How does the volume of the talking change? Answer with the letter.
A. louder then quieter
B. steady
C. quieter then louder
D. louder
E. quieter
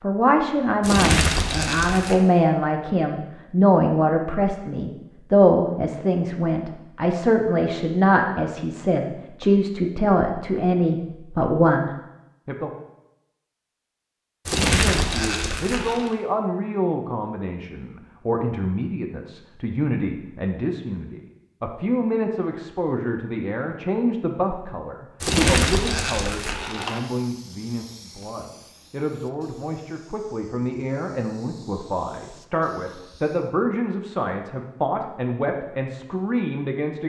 E.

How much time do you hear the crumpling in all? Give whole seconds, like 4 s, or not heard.
5 s.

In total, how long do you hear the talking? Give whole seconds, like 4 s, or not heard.
35 s.